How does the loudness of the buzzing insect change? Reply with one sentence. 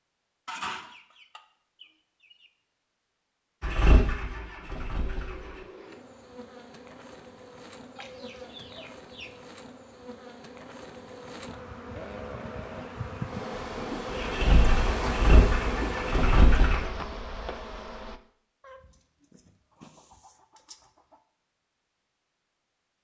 The loudness of the buzzing insect goes up.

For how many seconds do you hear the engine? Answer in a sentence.
You can hear the engine for 5 seconds altogether.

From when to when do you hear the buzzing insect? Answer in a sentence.
You can hear the buzzing insect from 5.0 to 18.2 s.